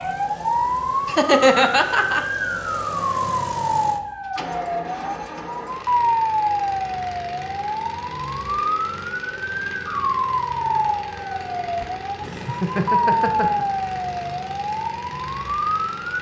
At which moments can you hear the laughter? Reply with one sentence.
You can hear the laughter from 1.1 to 2.2 s and from 11.8 to 13.7 s.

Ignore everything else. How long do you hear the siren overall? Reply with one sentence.
You can hear the siren for 16 seconds altogether.